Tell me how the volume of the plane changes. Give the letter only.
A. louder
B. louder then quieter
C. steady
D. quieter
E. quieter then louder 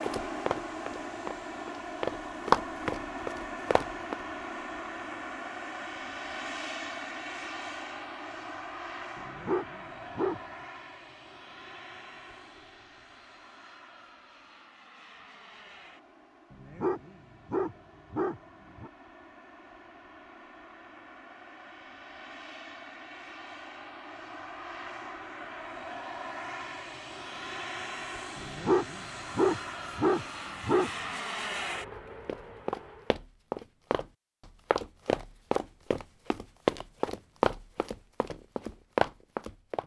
E.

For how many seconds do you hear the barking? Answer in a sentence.
The barking can be heard for 6 seconds in total.